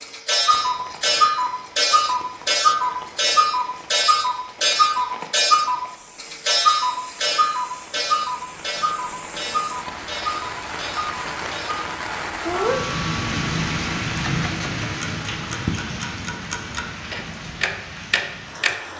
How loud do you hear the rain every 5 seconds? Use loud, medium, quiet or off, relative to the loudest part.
quiet, quiet, loud, medium.